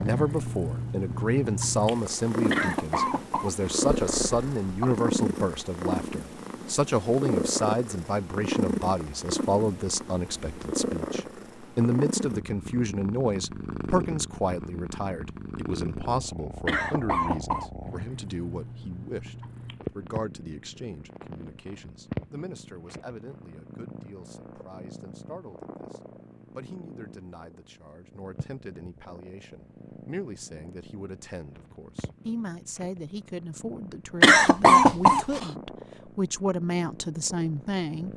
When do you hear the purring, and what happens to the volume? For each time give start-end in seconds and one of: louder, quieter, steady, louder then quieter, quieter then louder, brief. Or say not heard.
0.0-38.1 quieter.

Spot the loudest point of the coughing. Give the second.
35 s.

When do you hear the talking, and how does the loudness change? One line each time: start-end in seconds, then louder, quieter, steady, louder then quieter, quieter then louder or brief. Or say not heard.
0.0-38.1 quieter then louder.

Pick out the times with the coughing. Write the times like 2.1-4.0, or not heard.
2.5-5.0, 16.6-17.7, 34.2-35.5.